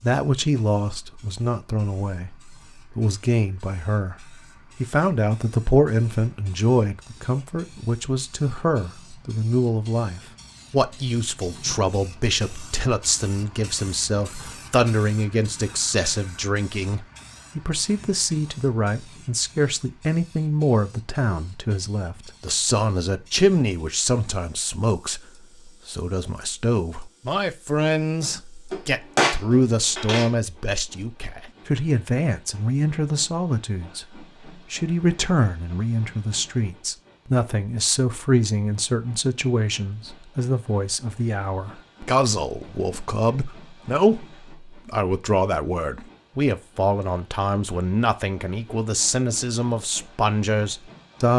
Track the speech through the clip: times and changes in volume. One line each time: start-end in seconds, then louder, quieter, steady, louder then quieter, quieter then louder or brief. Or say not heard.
0.0-51.3 steady.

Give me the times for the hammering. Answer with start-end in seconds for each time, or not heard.
28.7-30.3.